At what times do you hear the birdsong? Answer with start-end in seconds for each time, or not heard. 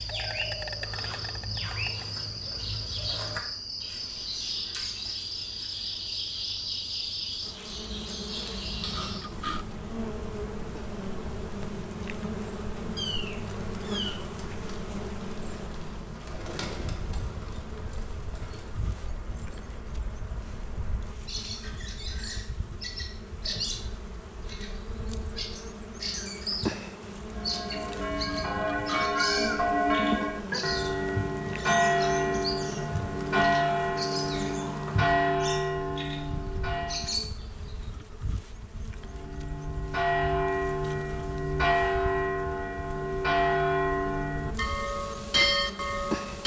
0.0-37.9.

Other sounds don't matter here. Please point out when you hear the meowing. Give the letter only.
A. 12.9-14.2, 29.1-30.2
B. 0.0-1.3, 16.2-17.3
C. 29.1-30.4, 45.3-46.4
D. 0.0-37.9
A.